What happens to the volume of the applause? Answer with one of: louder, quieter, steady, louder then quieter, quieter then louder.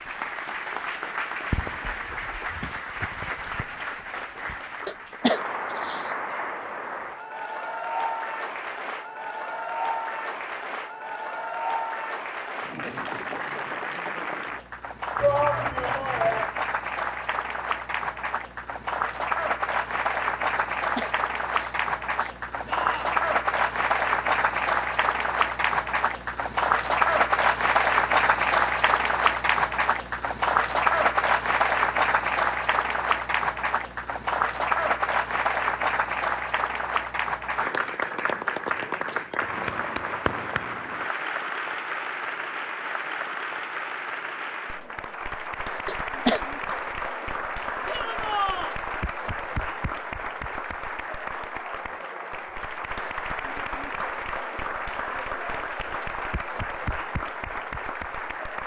louder then quieter.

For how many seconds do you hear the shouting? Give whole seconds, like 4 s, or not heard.
3 s.